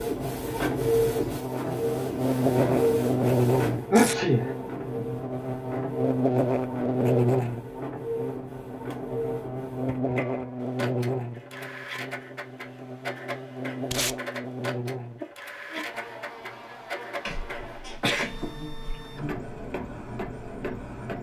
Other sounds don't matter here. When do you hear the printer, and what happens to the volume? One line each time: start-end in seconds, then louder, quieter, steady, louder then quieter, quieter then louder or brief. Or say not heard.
0.0-21.1 quieter.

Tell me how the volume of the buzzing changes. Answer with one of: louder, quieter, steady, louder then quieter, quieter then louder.
quieter.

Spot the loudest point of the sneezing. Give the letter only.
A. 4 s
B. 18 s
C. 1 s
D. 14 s
A.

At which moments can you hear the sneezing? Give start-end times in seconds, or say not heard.
3.9-4.5, 17.2-19.1.